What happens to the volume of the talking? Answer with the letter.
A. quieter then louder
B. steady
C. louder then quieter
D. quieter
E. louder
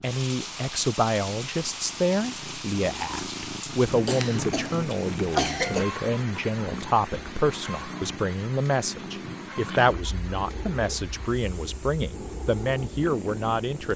B.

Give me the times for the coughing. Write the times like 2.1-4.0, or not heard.
3.9-5.8.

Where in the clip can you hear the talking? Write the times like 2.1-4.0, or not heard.
0.0-13.9.